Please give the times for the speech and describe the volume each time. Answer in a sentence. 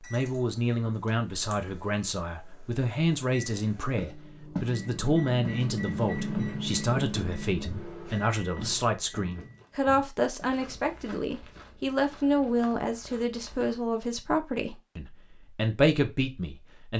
You can hear the speech from 0.0 to 16.9 s, at a steady volume.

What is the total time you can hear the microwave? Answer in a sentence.
The microwave can be heard for 10 seconds in total.